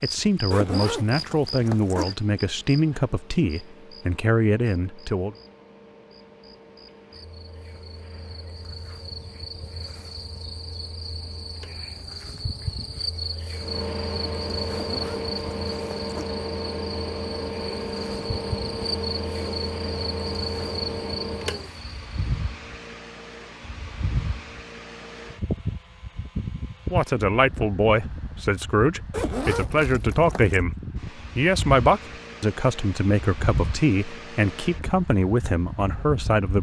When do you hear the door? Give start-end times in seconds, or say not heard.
not heard.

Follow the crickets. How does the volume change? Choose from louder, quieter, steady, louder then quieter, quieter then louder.
quieter then louder.